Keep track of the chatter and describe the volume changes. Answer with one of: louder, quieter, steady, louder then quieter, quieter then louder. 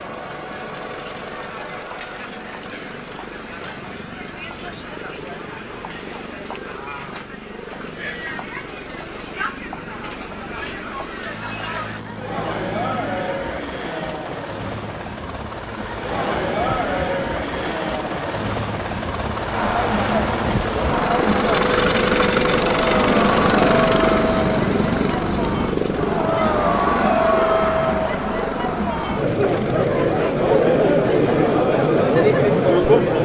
louder.